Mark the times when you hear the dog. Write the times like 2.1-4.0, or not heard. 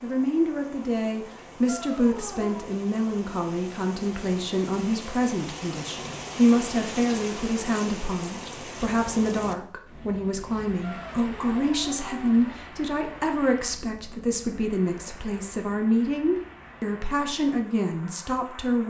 not heard.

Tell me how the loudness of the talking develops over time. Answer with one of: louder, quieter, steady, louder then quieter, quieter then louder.
steady.